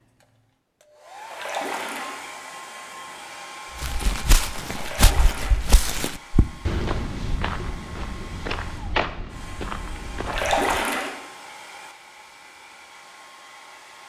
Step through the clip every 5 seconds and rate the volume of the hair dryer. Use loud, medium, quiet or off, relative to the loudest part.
loud, medium, medium.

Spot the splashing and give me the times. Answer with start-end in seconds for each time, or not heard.
1.3-2.1, 4.8-5.6, 10.2-11.1.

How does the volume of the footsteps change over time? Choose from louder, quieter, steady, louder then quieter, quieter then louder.
quieter.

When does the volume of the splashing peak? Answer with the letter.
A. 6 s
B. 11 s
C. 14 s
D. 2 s
B.